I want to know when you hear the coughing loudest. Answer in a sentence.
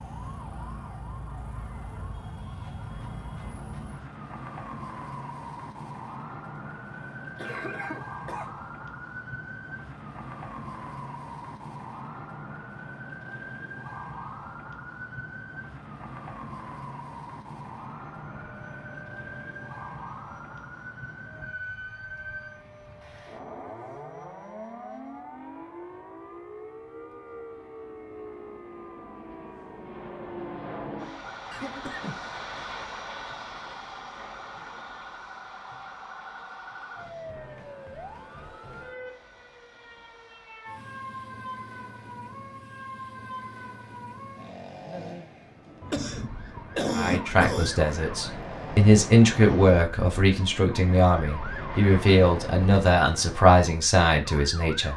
The loudest moment of the coughing is at 47 seconds.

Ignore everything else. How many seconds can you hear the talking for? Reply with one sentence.
You can hear the talking for 8 seconds altogether.